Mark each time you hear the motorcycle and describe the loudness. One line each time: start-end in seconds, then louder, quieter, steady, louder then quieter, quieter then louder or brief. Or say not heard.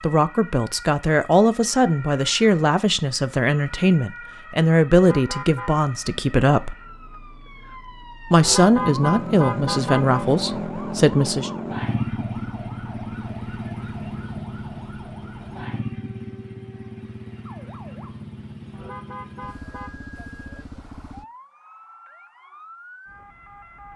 8.8-21.2 quieter.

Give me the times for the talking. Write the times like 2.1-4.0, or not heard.
0.0-6.8, 8.3-11.5.